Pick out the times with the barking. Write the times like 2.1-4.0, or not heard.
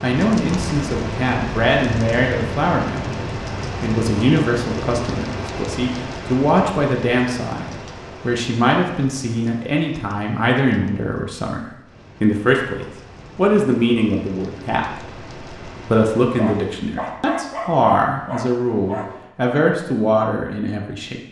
16.3-19.2.